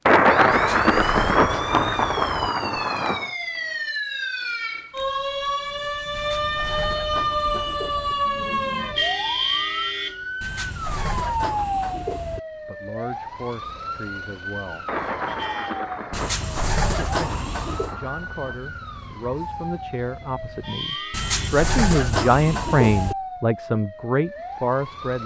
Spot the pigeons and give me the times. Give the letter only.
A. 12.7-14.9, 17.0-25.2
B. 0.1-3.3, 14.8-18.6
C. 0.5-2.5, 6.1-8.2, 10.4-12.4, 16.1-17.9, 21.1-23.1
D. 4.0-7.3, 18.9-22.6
C.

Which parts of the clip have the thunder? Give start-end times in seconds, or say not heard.
0.1-3.3, 14.8-18.6.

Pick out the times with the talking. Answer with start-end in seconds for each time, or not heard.
12.7-14.9, 17.0-25.2.